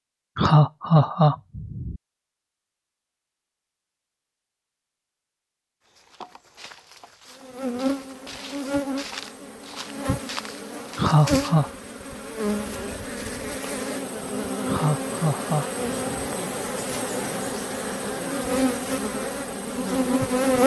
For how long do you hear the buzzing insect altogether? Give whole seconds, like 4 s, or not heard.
13 s.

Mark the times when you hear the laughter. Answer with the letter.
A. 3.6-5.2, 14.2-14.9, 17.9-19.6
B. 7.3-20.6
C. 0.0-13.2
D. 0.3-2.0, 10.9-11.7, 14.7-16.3
D.